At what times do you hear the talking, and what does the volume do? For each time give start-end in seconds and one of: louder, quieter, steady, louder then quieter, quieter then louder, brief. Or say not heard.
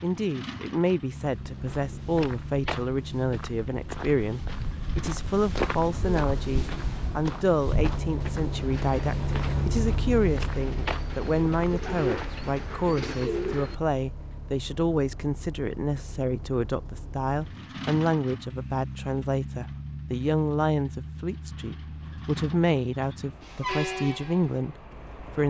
0.0-25.4 steady.